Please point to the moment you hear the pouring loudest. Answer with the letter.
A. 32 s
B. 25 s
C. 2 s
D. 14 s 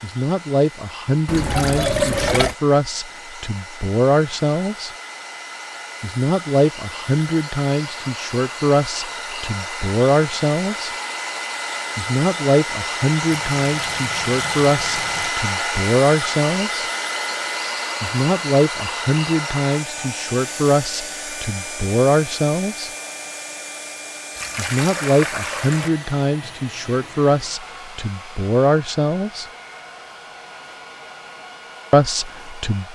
C.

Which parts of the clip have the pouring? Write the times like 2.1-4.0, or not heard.
1.2-2.5, 13.3-15.3, 24.4-25.9.